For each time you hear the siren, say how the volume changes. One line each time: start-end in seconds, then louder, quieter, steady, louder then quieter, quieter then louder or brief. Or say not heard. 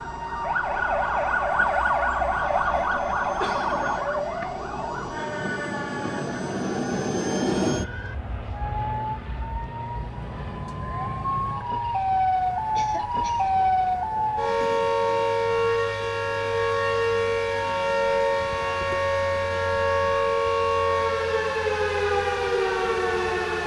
0.0-23.6 quieter then louder.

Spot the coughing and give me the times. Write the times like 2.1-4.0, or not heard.
3.4-4.5, 12.8-13.5.